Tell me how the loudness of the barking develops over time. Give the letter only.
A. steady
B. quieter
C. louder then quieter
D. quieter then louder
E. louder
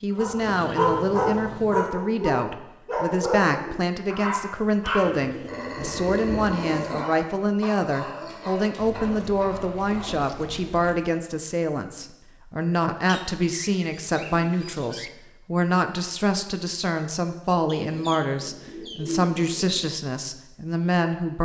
B.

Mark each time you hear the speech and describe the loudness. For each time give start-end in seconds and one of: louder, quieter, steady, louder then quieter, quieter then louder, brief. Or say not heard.
0.0-21.4 steady.